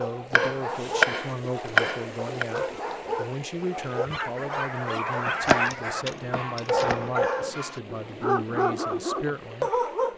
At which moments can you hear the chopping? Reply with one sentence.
The chopping can be heard from 0.3 to 2.5 s and from 5.5 to 7.0 s.